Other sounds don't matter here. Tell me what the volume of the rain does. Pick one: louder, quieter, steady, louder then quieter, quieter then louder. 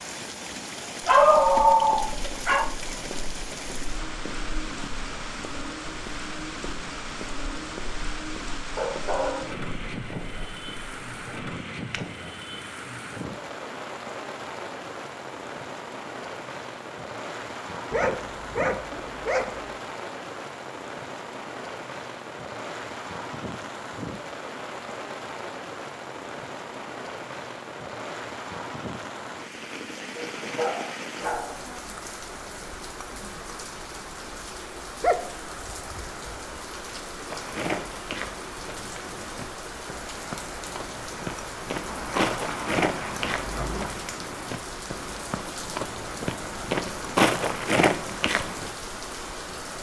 steady.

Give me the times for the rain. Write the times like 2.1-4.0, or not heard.
0.0-49.7.